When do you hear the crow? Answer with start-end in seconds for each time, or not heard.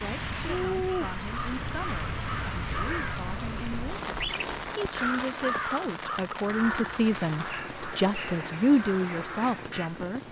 0.4-10.0.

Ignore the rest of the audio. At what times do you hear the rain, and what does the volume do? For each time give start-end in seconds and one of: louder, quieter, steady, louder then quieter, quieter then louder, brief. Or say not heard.
0.0-10.2 quieter.